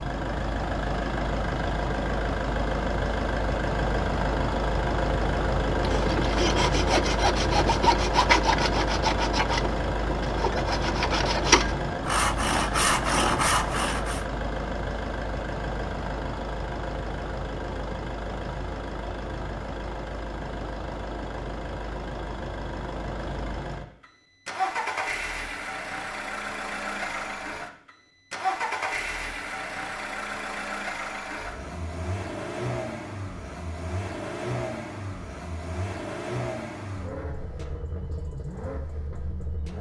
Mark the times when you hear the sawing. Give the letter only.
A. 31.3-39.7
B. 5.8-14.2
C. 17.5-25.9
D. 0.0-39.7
B.